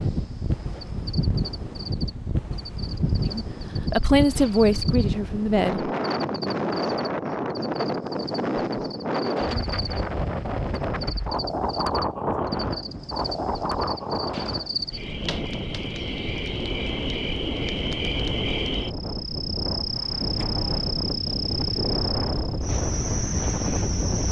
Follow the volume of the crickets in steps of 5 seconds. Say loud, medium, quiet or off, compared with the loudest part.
medium, medium, medium, loud, loud.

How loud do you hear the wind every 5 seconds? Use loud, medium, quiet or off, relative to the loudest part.
loud, loud, loud, medium, loud.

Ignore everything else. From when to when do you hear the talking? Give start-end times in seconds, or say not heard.
3.2-5.9.